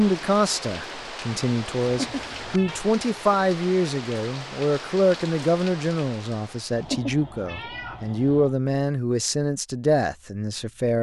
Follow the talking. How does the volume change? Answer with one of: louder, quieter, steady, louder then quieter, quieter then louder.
steady.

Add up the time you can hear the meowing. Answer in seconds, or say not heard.
3 s.